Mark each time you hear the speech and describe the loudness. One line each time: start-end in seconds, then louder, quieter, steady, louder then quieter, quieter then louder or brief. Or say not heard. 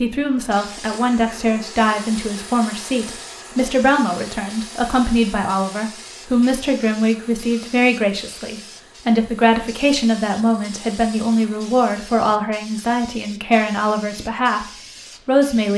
0.0-15.7 steady.